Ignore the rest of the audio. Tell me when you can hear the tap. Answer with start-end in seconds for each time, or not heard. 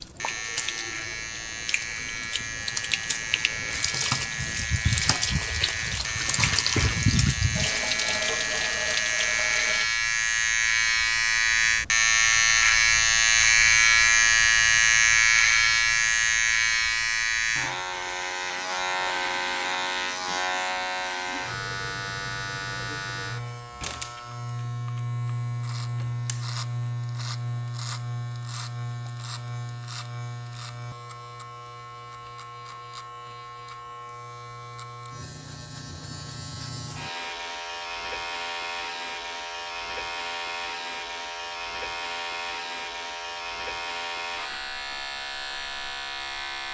0.0-9.9.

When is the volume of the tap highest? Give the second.
7 s.